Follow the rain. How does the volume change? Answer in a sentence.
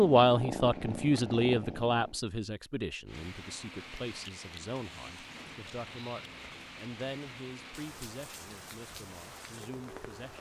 The loudness of the rain stays about the same.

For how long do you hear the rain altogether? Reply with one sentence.
You can hear the rain for 7 seconds altogether.